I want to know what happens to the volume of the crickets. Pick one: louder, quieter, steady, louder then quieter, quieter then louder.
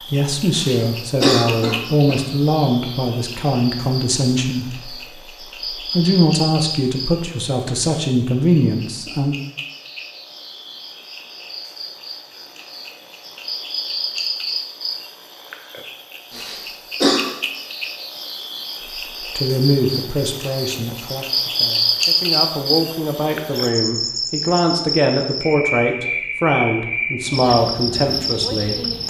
louder.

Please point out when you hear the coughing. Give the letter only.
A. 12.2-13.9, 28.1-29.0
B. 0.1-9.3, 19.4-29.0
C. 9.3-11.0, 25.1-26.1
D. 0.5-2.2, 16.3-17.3
D.